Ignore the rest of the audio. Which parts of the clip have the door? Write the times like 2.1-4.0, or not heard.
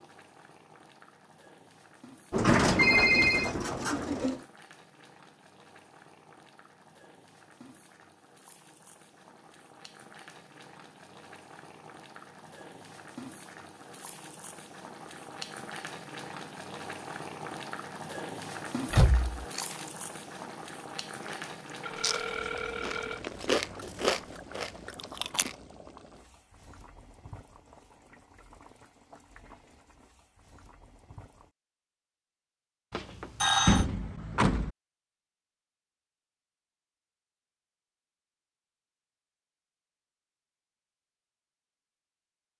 2.3-4.4, 18.9-19.4, 33.6-34.7.